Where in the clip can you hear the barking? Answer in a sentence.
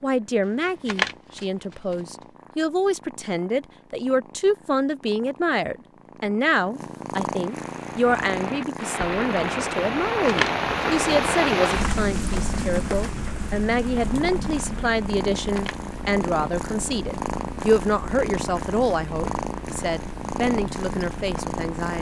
The barking can't be heard in this clip.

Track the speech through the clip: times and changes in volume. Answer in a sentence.
The speech can be heard from 0.0 to 21.9 s, at a steady volume.